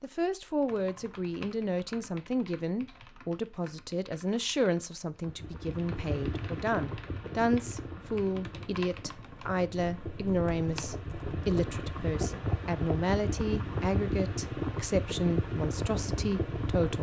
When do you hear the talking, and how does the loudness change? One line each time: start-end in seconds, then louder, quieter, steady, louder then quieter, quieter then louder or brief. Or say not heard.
0.0-16.9 steady.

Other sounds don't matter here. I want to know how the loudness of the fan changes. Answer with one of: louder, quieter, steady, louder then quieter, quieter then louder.
quieter then louder.